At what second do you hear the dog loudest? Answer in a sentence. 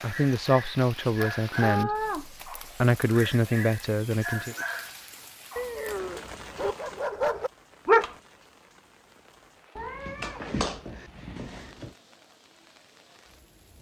The volume of the dog peaks at 8 seconds.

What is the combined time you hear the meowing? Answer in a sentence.
You can hear the meowing for 4 seconds altogether.